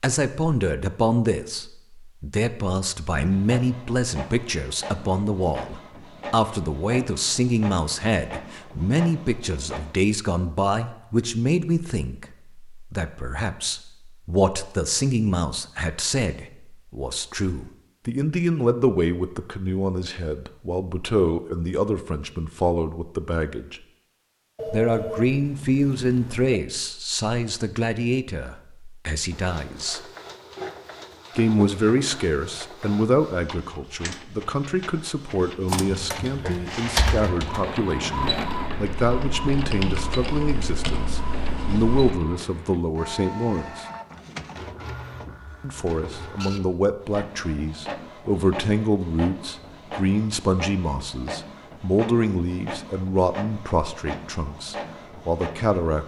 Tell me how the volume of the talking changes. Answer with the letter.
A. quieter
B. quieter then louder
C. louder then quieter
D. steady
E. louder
D.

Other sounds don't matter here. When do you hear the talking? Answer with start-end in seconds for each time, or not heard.
0.0-23.8, 24.6-30.0, 31.4-43.9, 45.6-56.0.